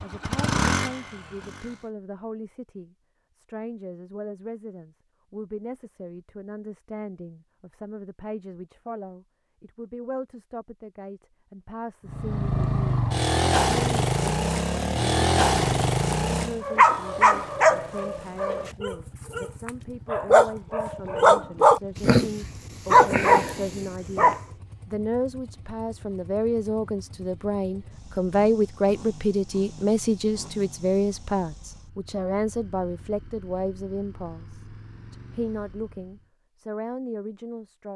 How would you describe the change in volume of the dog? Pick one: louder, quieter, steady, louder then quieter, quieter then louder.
quieter then louder.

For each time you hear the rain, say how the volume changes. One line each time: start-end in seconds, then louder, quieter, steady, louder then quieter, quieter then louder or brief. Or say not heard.
not heard.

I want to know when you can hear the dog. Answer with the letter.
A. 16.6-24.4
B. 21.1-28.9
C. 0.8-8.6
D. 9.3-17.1
A.